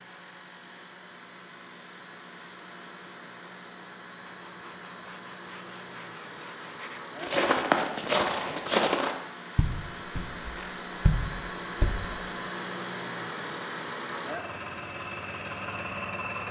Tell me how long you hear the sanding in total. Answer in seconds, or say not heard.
3 s.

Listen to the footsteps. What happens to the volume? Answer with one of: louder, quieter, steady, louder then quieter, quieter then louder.
quieter then louder.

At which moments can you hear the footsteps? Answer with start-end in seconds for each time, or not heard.
7.2-12.2.